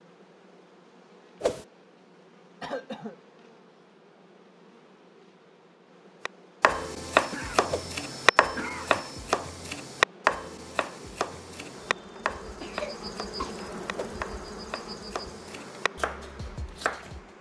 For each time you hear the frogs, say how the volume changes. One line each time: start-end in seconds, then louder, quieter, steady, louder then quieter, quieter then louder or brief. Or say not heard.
not heard.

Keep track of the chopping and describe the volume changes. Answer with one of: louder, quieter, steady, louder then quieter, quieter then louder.
quieter.